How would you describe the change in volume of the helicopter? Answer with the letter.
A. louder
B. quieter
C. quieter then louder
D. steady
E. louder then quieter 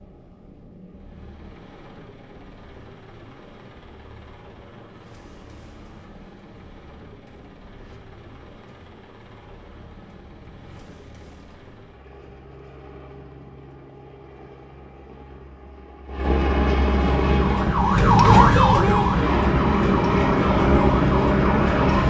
A.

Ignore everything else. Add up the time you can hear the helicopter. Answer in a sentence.
You can hear the helicopter for 22 seconds altogether.